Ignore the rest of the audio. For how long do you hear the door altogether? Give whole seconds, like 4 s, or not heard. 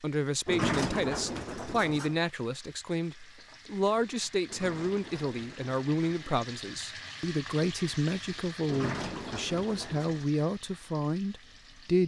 5 s.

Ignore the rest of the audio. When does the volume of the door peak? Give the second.
1 s.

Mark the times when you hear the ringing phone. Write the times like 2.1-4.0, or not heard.
not heard.